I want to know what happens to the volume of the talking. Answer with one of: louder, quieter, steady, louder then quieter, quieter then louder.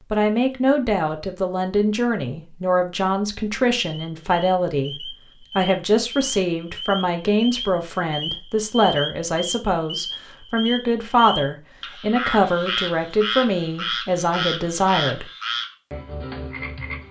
steady.